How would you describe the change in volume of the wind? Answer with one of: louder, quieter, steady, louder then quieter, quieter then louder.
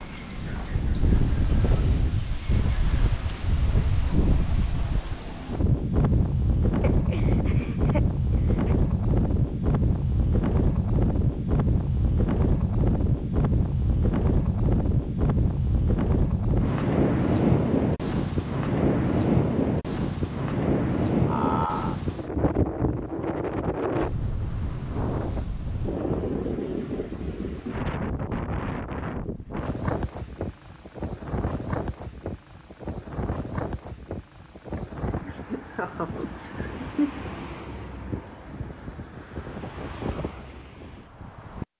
quieter.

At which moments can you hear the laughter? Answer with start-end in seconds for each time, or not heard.
6.8-8.8, 21.2-21.9, 34.8-37.1.